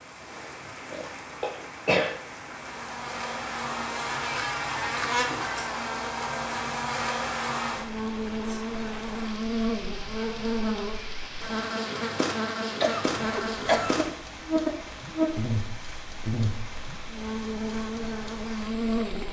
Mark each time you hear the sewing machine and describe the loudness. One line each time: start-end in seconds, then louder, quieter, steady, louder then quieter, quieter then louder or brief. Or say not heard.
not heard.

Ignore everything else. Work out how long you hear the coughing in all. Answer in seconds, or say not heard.
3 s.